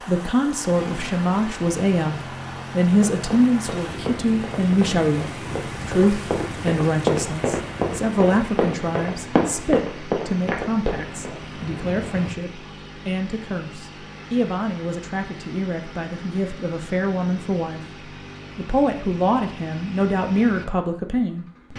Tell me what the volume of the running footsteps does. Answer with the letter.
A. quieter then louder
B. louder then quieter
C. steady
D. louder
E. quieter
D.